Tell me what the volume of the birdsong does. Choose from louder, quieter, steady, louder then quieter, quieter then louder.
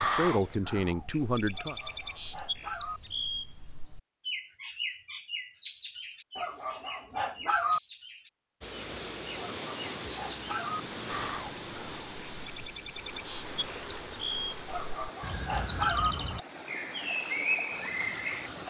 quieter then louder.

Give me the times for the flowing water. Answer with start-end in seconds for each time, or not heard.
8.6-18.6.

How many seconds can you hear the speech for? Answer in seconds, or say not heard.
2 s.